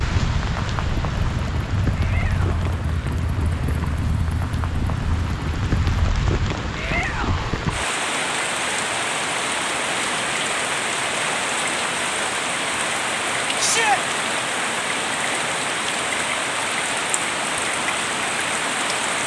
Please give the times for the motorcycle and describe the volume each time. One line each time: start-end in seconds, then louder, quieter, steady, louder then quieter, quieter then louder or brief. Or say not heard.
0.1-6.0 steady.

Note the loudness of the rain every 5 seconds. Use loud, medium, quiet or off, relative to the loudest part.
medium, loud, loud, loud.